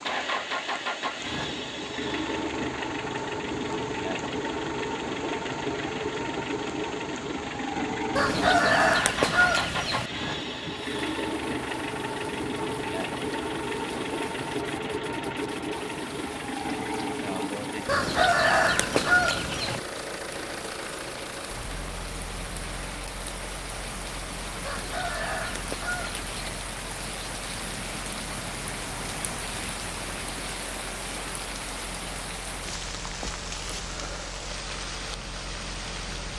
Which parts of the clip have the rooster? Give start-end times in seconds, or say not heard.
8.2-10.1, 17.9-19.8, 24.6-26.4.